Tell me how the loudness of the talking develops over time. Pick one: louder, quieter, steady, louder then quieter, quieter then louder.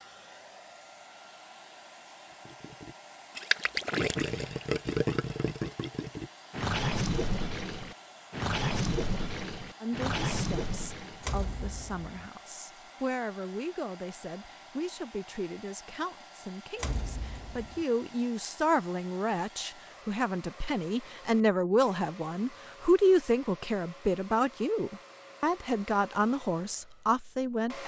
louder.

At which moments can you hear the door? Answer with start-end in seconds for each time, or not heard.
11.2-12.3, 16.8-17.9.